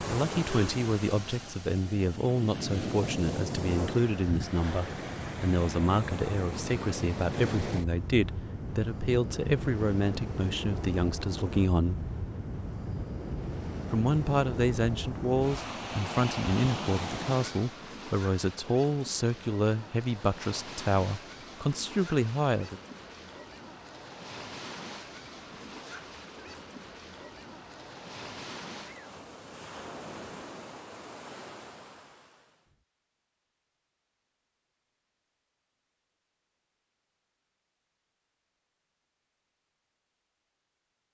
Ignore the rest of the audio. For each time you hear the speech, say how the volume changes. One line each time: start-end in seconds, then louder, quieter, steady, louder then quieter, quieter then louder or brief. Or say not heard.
0.0-12.0 steady
13.9-22.8 steady.